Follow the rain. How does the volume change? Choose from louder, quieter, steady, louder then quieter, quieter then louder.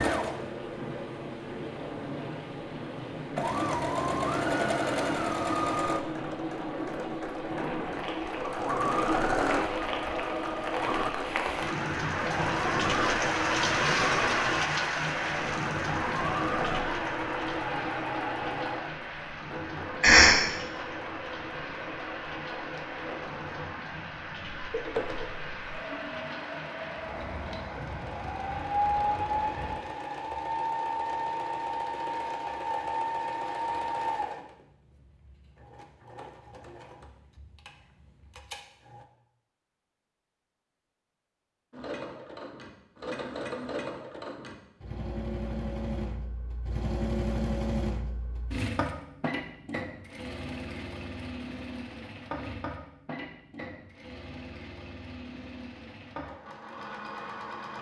louder then quieter.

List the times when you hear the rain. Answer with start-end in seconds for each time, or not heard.
0.1-29.8.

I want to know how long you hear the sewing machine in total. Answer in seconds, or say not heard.
55 s.